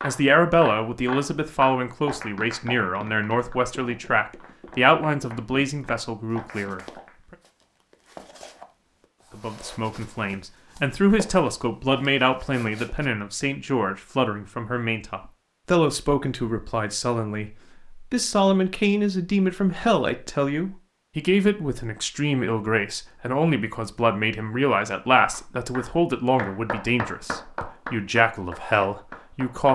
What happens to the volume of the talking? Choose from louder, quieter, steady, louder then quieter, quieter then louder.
steady.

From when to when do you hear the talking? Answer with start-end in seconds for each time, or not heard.
0.0-6.8, 9.3-29.7.